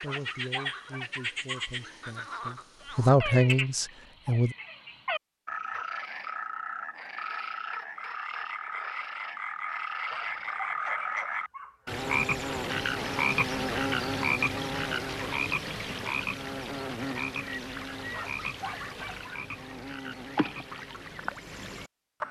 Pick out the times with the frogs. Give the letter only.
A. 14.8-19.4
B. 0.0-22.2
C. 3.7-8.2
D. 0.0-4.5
B.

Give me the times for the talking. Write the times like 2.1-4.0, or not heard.
0.0-4.5.